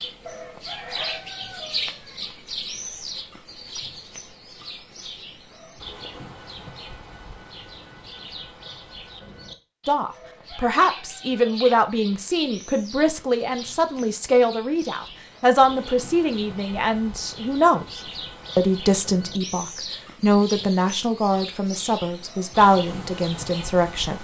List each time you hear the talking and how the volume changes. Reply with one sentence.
The talking can be heard from 9.8 to 24.1 s, at a steady volume.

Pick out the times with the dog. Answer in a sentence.
The dog can be heard from 0.2 to 1.3 s.